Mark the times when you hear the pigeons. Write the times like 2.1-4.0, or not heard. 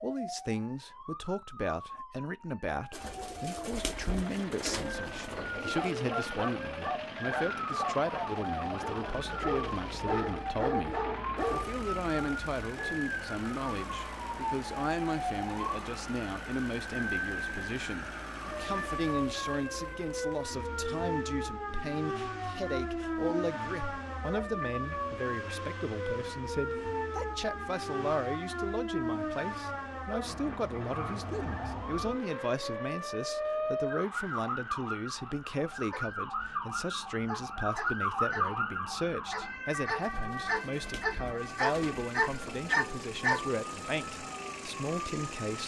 2.9-5.9, 40.0-42.7.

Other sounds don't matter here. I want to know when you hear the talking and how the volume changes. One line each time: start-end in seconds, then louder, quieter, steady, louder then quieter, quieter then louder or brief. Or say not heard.
0.0-45.6 steady.